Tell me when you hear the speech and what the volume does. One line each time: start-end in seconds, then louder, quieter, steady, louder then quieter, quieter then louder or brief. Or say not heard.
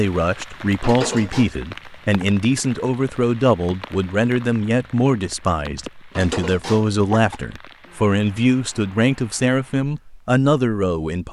0.0-11.2 steady.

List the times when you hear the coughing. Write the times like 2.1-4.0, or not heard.
0.8-1.5, 6.2-7.4.